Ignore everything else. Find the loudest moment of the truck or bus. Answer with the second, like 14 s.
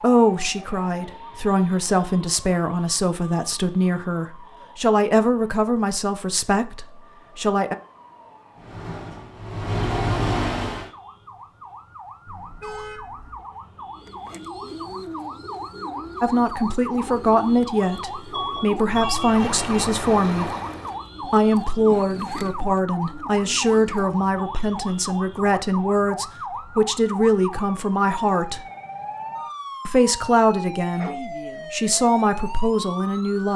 10 s.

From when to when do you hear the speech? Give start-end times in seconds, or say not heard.
0.0-7.8, 16.2-20.5, 21.2-28.6, 29.9-33.5.